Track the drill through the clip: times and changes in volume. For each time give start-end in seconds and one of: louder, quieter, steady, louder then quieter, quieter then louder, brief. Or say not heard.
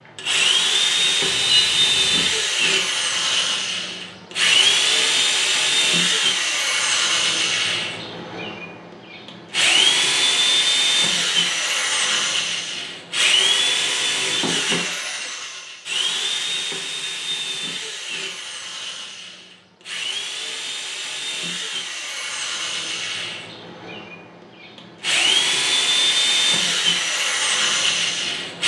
0.1-28.6 quieter then louder.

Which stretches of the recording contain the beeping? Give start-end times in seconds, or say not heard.
1.2-2.2.